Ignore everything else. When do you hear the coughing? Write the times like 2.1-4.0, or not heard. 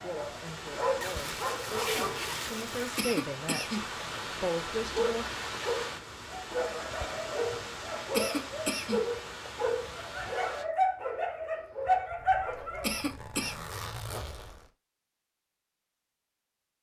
3.0-3.9, 8.1-9.1, 12.8-13.6.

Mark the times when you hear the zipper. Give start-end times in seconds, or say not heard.
1.0-3.0, 12.2-14.7.